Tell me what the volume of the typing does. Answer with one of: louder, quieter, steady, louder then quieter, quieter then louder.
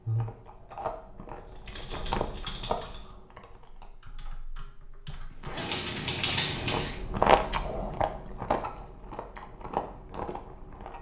quieter then louder.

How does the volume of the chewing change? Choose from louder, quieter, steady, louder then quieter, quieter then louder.
louder then quieter.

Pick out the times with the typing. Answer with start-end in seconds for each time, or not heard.
1.4-7.0.